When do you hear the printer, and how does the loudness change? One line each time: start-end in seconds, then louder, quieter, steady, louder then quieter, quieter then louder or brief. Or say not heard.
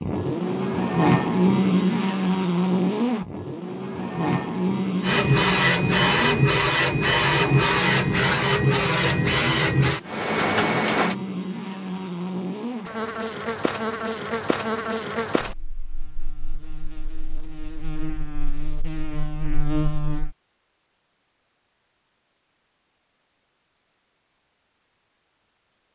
5.0-11.2 steady.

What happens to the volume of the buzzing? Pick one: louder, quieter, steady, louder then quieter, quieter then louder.
quieter.